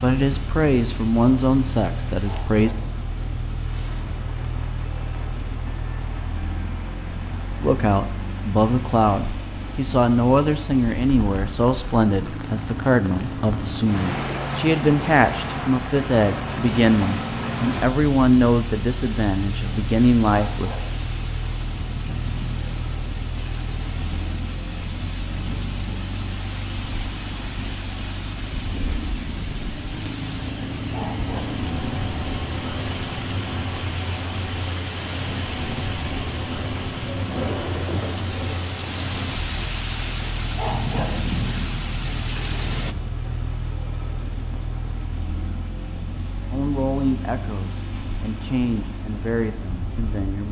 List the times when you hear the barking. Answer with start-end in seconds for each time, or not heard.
2.2-3.0, 20.5-20.9, 30.9-31.6, 40.5-41.2.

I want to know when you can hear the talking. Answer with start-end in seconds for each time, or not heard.
0.0-2.8, 7.6-20.7, 46.5-50.4.